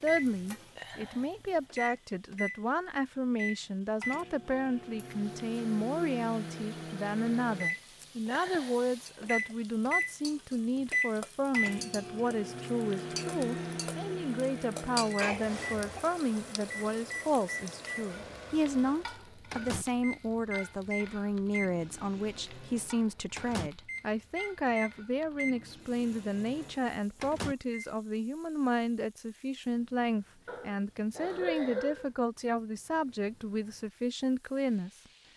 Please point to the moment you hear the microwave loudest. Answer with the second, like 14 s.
11 s.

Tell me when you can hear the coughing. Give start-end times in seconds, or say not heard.
15.2-16.1, 30.4-32.1.